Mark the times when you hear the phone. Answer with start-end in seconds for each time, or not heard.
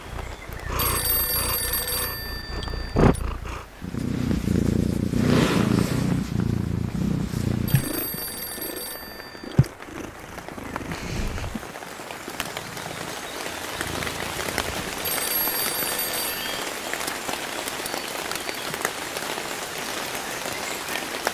0.8-3.2, 7.7-9.6, 15.0-16.6.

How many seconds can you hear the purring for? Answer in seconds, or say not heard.
15 s.